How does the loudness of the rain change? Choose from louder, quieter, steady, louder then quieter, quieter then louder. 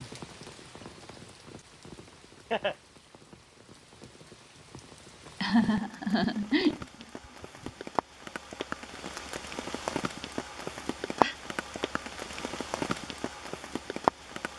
louder.